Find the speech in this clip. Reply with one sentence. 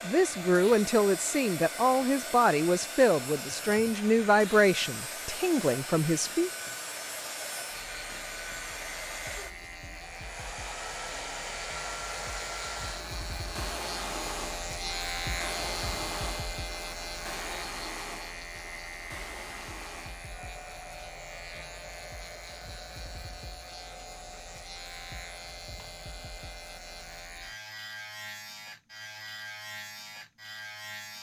You can hear the speech from 0.0 to 6.5 s.